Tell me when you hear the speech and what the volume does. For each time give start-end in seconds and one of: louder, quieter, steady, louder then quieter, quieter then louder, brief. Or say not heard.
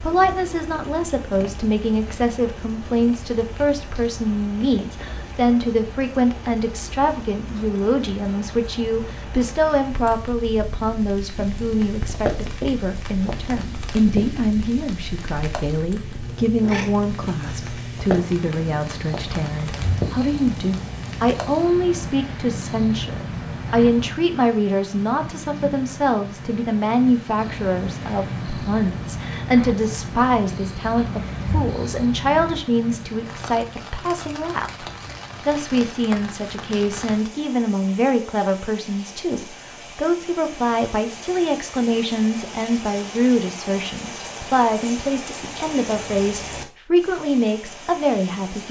0.0-34.9 steady
35.5-48.6 steady.